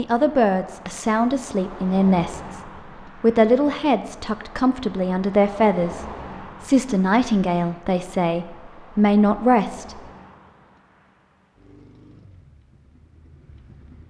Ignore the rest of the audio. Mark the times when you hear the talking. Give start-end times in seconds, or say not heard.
0.0-2.6, 3.2-10.0.